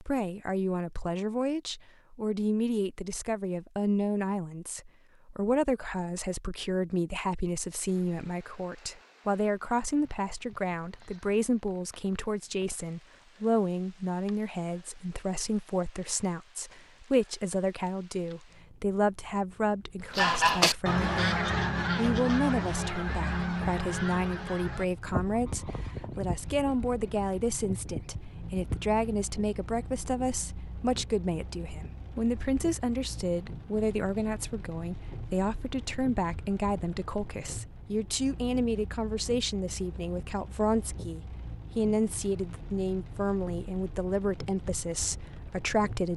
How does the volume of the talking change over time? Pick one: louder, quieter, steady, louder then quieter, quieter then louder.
steady.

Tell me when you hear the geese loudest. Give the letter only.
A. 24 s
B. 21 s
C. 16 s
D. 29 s
B.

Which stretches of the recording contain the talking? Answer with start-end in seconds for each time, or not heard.
0.0-46.1.